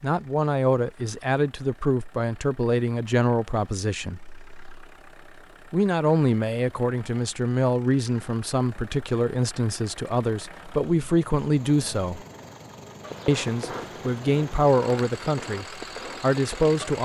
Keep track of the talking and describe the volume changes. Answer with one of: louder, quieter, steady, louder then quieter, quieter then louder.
steady.